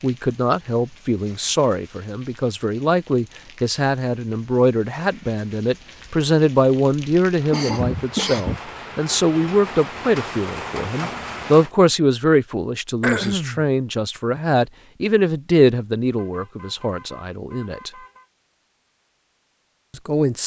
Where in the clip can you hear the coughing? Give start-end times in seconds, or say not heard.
7.5-8.6, 13.0-13.7.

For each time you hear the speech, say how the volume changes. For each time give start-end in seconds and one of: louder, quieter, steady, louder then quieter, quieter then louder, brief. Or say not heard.
0.0-17.9 steady
19.9-20.4 brief.